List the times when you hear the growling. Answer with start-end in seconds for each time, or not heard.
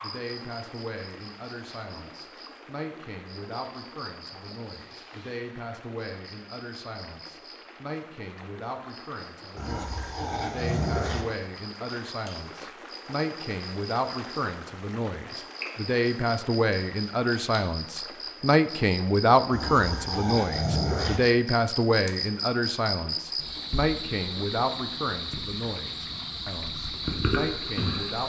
9.6-11.2, 19.5-21.2.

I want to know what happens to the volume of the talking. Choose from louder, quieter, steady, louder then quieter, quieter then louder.
louder then quieter.